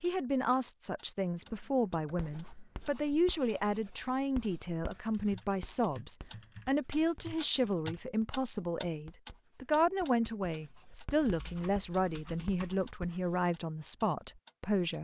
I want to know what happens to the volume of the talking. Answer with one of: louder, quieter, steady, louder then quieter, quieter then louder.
steady.